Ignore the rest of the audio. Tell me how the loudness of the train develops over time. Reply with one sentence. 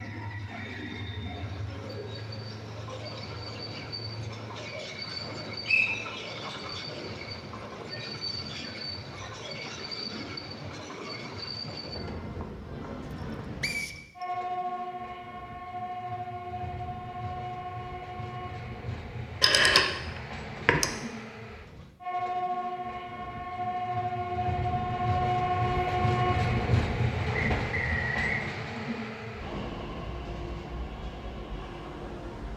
The loudness of the train goes up.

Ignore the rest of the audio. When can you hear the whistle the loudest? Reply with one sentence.
The loudest moment of the whistle is at 6 seconds.